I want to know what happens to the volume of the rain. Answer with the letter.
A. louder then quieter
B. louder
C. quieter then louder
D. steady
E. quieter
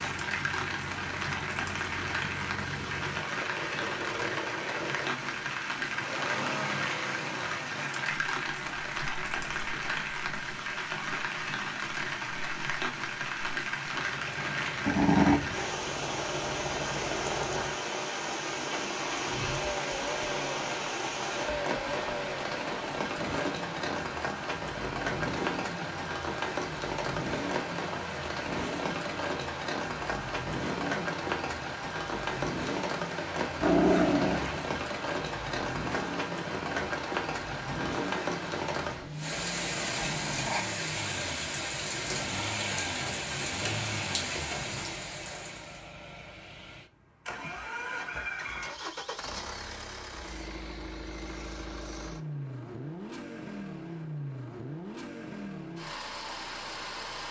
D.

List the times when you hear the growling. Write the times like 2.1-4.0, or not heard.
14.8-15.6, 33.6-34.6, 39.0-40.8.